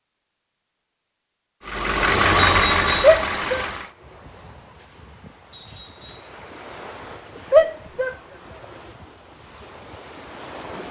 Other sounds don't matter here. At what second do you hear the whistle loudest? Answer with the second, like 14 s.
3 s.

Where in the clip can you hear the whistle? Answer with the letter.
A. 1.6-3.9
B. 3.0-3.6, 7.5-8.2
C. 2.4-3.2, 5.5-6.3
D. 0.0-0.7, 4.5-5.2
C.